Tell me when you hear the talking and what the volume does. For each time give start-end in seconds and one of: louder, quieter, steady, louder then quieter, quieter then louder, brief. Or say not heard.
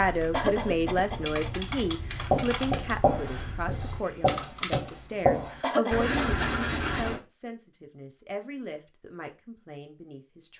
0.0-10.5 quieter.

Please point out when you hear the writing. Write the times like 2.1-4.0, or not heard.
2.1-7.2.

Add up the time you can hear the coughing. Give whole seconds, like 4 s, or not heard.
2 s.